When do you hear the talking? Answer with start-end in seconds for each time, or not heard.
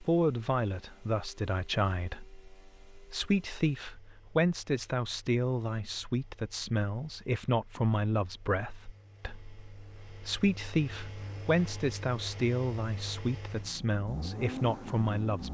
0.0-15.4.